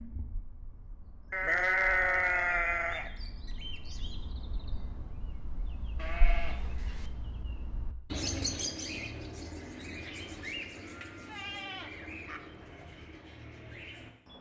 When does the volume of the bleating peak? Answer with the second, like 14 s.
2 s.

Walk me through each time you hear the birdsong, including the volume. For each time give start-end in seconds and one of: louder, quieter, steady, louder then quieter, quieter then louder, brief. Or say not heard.
0.0-14.3 louder then quieter.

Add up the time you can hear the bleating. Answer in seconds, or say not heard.
5 s.